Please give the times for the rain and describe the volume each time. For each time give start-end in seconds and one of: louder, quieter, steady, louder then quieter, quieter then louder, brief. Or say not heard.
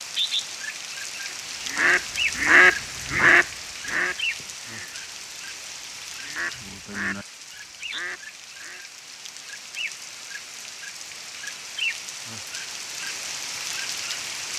0.0-14.5 quieter then louder.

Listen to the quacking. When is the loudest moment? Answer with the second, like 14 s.
3 s.